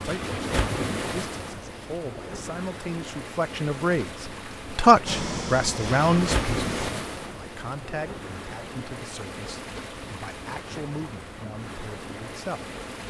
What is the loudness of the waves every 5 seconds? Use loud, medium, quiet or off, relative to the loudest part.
loud, loud, medium.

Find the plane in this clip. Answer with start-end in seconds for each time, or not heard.
5.0-6.9.